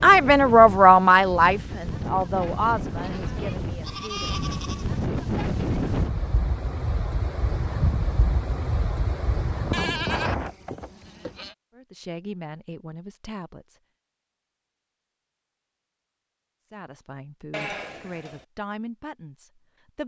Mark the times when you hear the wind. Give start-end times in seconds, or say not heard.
0.0-10.5.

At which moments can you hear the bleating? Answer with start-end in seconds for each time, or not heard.
3.0-4.8, 9.7-11.6, 17.5-18.4.